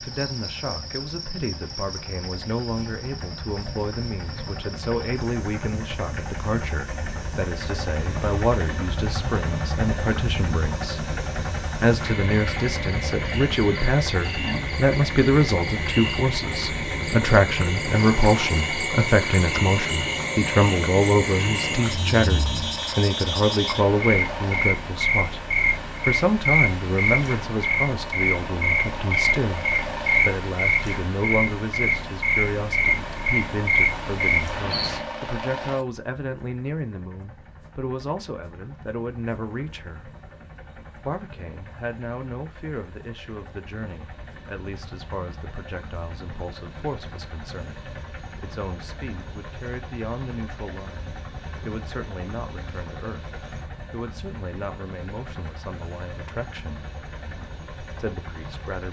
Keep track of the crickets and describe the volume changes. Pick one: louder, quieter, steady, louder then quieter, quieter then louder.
louder.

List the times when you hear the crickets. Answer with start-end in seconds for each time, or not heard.
0.0-35.0.